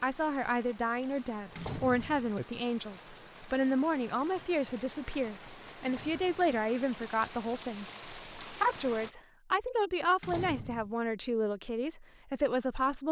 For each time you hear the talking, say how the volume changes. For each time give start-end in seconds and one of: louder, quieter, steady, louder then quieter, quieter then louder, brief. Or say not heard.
0.0-13.0 steady.